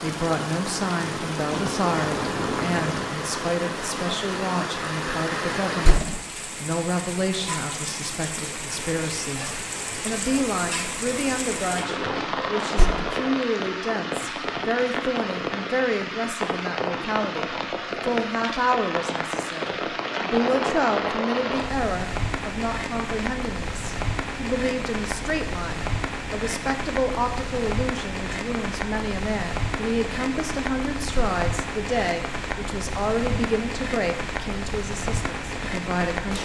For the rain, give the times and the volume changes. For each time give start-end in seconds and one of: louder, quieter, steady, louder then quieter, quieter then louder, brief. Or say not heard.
0.0-36.3 steady.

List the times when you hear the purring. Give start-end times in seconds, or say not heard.
not heard.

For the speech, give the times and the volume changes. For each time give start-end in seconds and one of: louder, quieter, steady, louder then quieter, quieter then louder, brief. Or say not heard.
0.0-36.3 steady.